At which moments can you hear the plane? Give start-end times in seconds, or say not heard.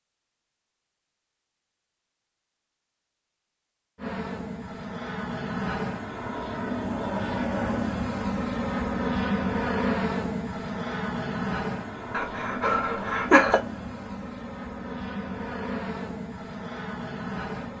4.0-17.7.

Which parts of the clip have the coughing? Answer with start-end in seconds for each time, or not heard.
12.1-13.6.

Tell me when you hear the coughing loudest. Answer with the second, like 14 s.
13 s.